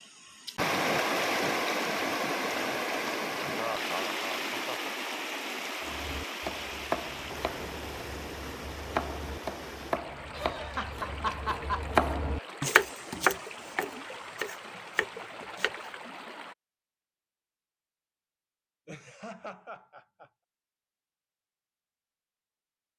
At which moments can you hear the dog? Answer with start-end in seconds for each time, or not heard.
not heard.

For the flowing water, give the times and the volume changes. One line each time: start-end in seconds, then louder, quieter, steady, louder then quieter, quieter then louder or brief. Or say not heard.
0.0-16.6 quieter.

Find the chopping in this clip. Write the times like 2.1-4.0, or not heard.
5.8-15.9.